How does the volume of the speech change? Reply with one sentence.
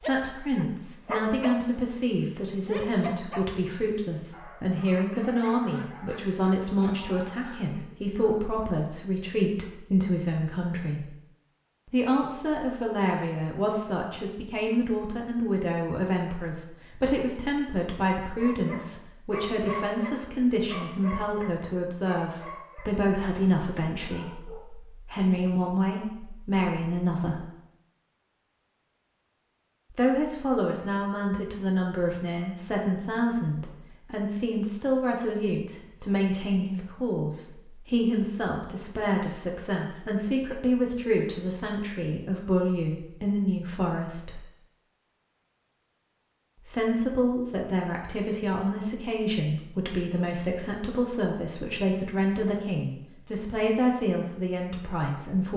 The volume of the speech stays about the same.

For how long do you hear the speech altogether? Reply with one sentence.
The speech can be heard for 50 seconds in total.